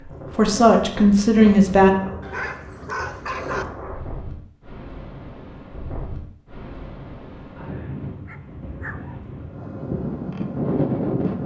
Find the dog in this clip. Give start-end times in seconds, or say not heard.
2.2-3.6, 8.2-9.2.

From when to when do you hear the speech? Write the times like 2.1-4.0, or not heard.
0.3-1.9.